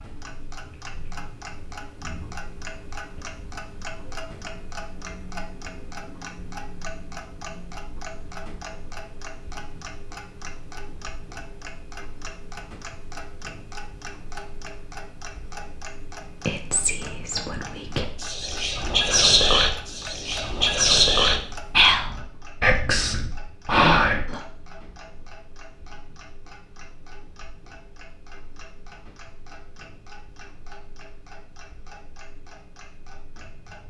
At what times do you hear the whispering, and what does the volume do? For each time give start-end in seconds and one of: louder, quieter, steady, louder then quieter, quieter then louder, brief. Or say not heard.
16.4-24.4 louder.